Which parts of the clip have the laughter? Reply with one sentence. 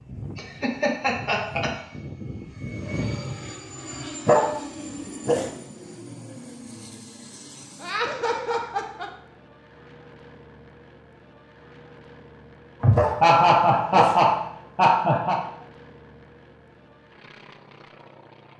The laughter can be heard from 0.3 to 1.7 s, from 7.8 to 9.1 s and from 12.8 to 15.4 s.